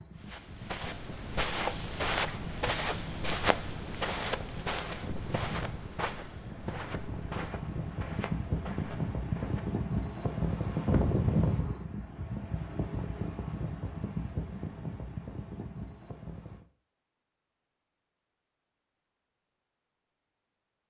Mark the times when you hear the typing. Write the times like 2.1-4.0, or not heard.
not heard.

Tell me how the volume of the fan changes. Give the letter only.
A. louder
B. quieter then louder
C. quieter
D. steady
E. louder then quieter
E.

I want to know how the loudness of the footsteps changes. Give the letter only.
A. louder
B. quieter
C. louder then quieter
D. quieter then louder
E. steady
B.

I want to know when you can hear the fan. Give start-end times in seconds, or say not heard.
0.0-16.6.